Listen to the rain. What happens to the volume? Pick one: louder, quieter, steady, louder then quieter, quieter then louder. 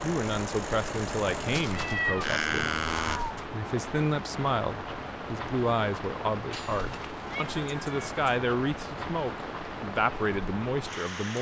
steady.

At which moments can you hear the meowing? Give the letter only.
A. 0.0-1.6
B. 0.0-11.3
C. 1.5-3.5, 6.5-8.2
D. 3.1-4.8
C.